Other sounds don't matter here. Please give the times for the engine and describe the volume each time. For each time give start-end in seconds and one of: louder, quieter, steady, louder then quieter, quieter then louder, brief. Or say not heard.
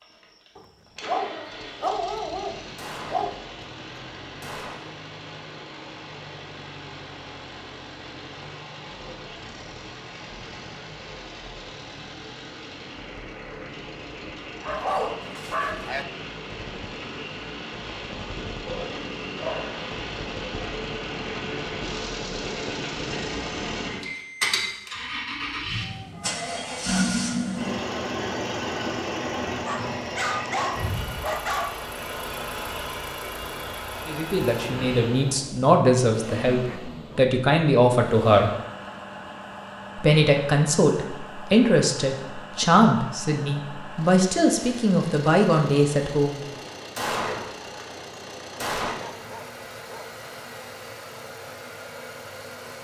0.0-52.7 louder then quieter.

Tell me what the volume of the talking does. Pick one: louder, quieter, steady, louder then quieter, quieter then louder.
steady.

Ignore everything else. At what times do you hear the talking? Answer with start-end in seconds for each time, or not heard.
34.0-38.5, 40.0-46.5.